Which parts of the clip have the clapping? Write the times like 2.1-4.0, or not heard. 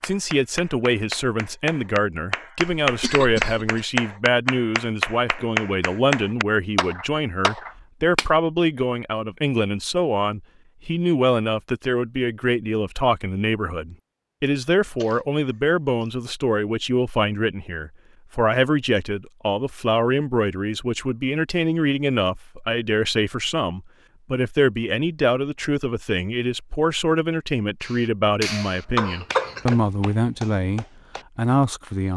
0.0-8.2, 27.8-31.2.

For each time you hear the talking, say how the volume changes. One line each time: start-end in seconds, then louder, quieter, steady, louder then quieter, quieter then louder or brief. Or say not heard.
0.0-32.1 steady.